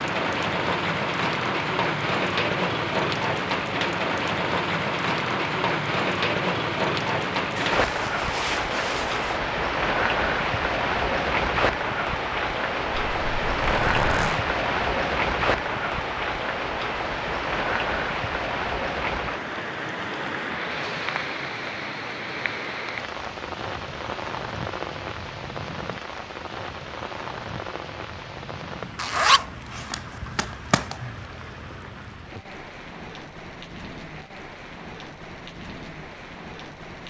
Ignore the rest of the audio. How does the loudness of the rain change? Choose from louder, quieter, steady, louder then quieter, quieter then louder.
quieter.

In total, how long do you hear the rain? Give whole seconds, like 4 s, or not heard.
37 s.